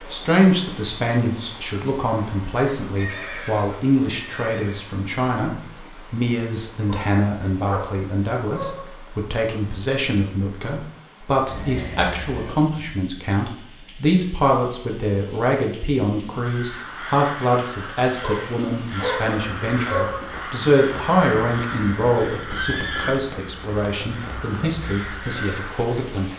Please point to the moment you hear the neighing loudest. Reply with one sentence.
The loudest moment of the neighing is at 23 seconds.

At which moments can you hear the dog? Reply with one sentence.
The dog can be heard from 6.8 to 8.9 s and from 18.2 to 20.2 s.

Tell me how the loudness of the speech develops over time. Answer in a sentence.
The volume of the speech stays about the same.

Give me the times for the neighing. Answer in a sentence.
The neighing can be heard from 3.0 to 4.9 s, from 11.4 to 12.6 s and from 22.2 to 23.2 s.